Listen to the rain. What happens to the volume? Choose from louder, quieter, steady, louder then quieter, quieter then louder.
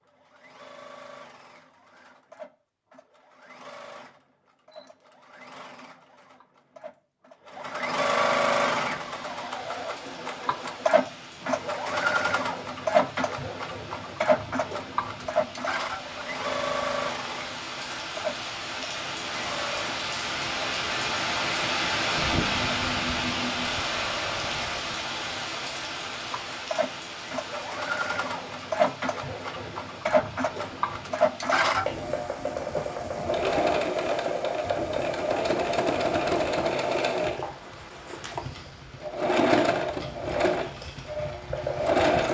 louder then quieter.